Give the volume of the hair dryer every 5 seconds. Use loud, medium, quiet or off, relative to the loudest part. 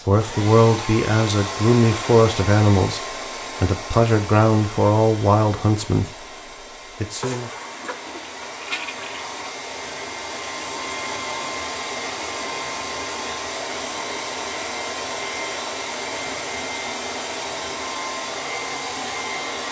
loud, medium, loud, loud.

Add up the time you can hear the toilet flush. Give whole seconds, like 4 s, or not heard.
2 s.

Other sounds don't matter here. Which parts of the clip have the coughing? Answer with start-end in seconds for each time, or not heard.
not heard.